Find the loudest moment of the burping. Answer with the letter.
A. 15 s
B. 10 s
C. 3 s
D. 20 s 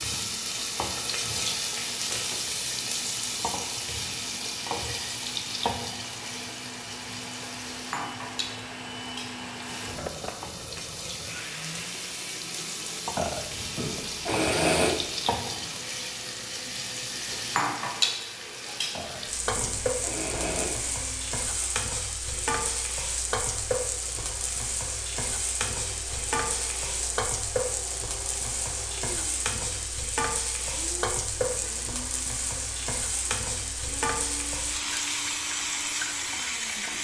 A.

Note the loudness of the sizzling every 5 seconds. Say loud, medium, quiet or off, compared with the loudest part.
loud, medium, medium, loud, loud, loud, loud, loud.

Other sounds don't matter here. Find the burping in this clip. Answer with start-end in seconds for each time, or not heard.
13.2-15.1, 18.9-20.8.